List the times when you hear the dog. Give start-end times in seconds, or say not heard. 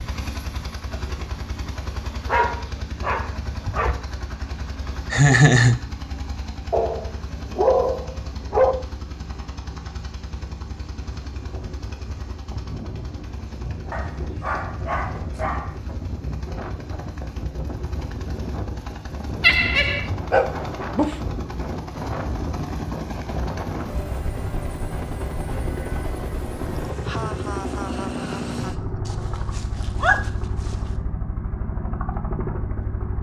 2.2-4.0, 6.7-8.8, 13.9-15.8, 20.3-21.2, 29.1-30.8.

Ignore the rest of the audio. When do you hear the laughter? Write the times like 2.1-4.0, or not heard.
5.1-5.8, 19.4-20.1, 26.9-29.0.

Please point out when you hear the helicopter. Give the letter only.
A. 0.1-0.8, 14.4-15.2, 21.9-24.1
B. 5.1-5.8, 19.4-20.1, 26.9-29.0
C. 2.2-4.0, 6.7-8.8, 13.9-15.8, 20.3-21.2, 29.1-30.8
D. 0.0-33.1
D.